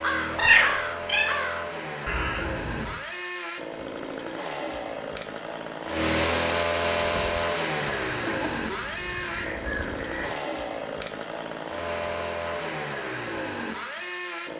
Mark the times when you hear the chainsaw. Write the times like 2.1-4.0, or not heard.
0.0-14.5.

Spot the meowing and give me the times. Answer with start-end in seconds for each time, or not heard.
0.3-1.4.